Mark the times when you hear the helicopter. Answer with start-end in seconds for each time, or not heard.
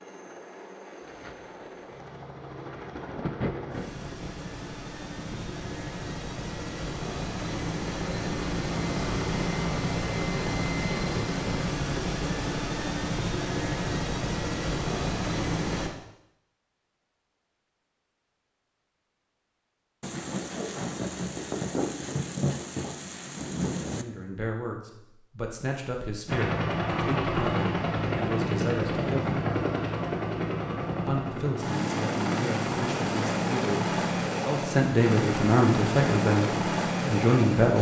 0.0-15.9, 26.2-37.7.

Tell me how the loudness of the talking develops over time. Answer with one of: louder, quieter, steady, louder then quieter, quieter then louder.
louder.